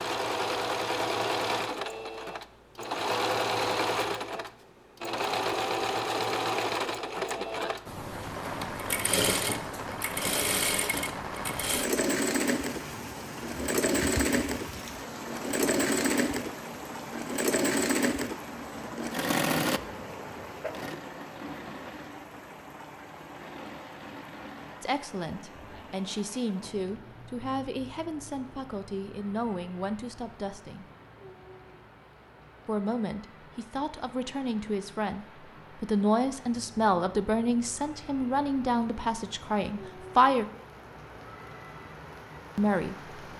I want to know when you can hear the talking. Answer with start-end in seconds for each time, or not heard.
24.8-30.9, 32.6-40.5, 42.5-43.0.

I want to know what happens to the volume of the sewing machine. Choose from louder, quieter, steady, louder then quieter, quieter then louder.
quieter.